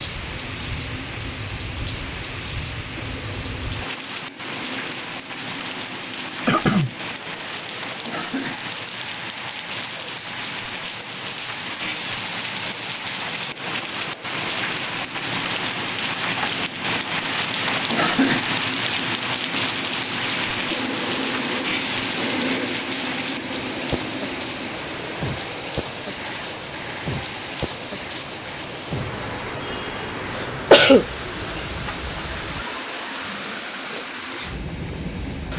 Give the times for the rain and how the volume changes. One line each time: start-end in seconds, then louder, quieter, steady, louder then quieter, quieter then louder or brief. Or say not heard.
0.0-35.5 louder then quieter.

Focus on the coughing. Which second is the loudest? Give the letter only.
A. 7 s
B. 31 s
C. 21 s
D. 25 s
B.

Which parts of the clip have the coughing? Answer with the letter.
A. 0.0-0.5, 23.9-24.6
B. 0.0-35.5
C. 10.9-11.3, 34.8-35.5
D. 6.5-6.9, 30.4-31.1
D.